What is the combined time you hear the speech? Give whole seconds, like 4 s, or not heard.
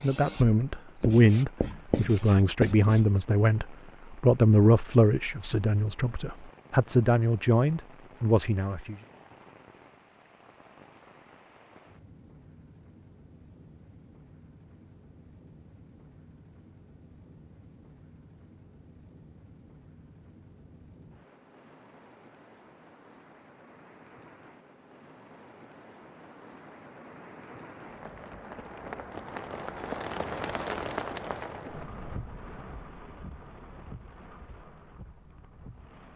9 s.